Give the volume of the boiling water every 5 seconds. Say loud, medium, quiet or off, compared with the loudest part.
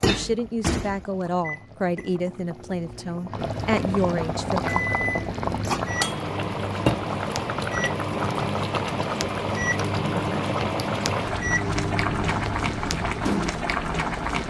medium, loud, loud.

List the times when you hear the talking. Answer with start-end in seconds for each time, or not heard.
0.0-4.6.